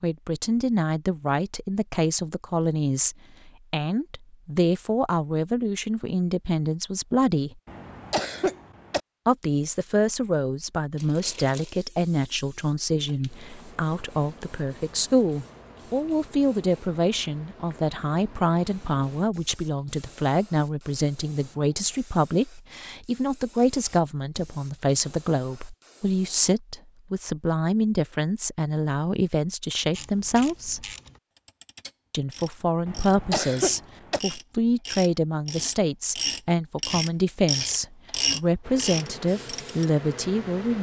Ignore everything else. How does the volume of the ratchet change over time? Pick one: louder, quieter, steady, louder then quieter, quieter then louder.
louder.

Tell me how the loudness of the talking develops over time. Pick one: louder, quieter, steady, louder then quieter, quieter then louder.
steady.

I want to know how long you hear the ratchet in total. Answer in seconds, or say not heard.
10 s.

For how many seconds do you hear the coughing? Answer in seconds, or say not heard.
3 s.